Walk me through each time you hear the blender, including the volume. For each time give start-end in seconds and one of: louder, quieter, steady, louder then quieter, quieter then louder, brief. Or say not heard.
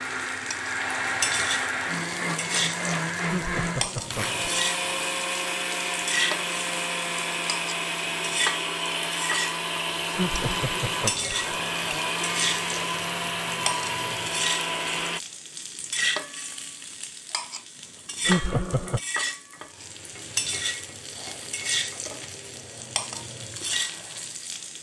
0.0-15.2 steady.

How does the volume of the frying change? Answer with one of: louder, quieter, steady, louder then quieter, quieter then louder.
steady.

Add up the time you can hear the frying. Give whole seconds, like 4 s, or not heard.
25 s.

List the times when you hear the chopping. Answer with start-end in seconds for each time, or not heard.
not heard.